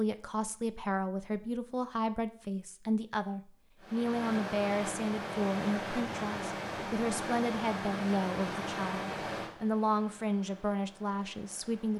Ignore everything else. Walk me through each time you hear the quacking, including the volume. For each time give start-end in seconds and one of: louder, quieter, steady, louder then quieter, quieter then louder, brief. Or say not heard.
not heard.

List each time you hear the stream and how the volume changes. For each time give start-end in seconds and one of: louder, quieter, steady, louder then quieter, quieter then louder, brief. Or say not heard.
3.8-11.9 quieter.